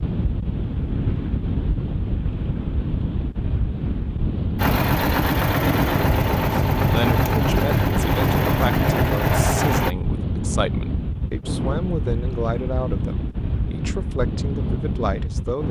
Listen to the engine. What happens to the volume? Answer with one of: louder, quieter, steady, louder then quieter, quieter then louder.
steady.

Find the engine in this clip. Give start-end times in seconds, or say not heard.
4.5-9.9.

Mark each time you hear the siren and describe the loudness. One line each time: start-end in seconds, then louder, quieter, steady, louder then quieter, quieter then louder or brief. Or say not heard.
not heard.